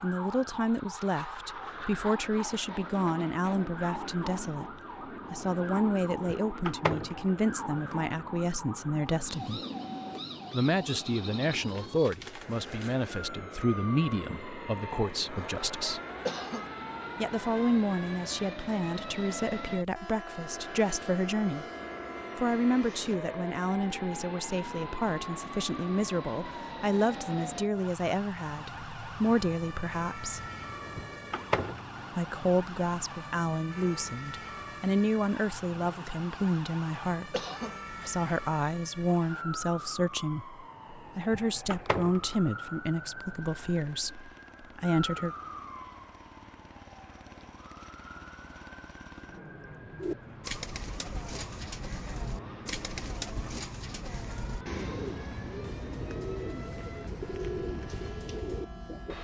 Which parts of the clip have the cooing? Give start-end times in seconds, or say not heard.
50.0-59.2.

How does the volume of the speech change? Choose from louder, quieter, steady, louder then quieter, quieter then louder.
steady.